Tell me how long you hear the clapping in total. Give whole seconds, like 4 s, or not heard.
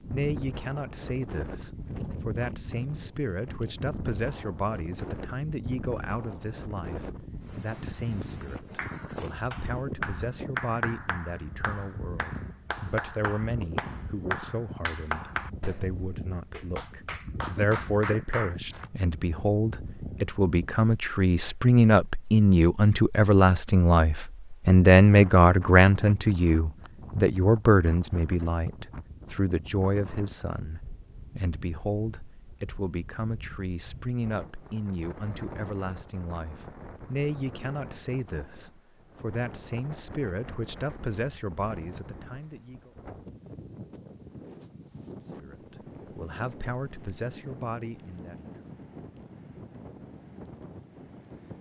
10 s.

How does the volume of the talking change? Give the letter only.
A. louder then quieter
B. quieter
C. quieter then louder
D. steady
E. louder
A.